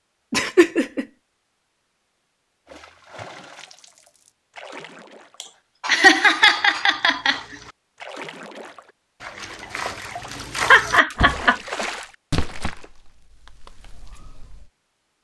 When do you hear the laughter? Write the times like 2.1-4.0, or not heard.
0.3-1.1, 5.4-7.4, 10.7-11.6.